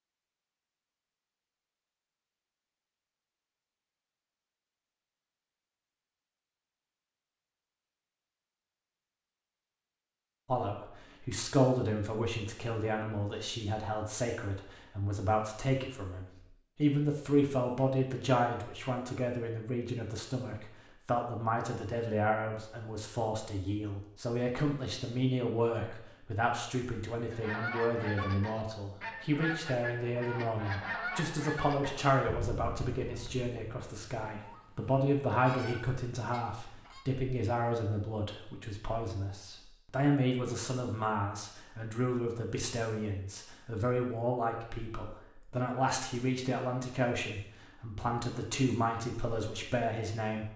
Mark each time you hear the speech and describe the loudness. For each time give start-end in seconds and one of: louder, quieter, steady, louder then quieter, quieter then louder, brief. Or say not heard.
10.4-50.5 steady.